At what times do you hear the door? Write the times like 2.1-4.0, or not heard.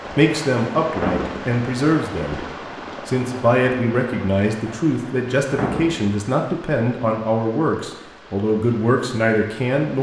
0.9-1.6, 5.5-6.2.